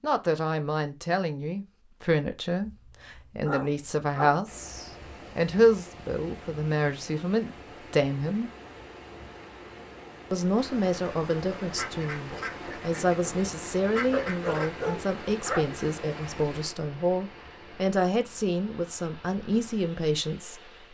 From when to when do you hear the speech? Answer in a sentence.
The speech can be heard from 0.0 to 8.5 s and from 10.3 to 20.9 s.